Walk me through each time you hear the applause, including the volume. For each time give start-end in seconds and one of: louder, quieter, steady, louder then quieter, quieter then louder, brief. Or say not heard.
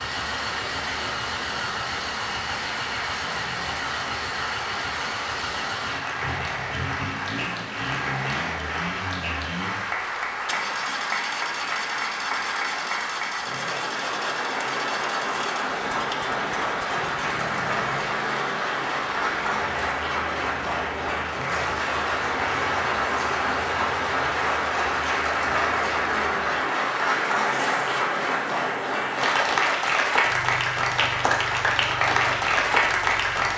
0.0-33.5 louder.